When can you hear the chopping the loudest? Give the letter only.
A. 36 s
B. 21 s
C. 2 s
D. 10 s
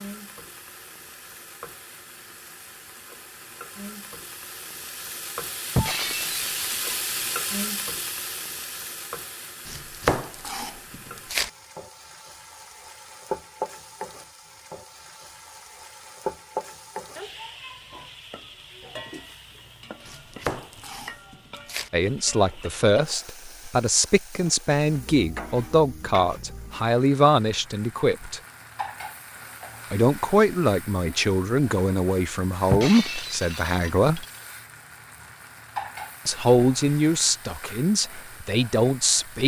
D.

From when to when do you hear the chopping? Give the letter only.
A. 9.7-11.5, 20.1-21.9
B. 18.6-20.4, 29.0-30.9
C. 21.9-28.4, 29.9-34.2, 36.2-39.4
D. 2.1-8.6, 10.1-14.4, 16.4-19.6
A.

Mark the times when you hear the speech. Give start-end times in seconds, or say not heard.
21.9-28.4, 29.9-34.2, 36.2-39.4.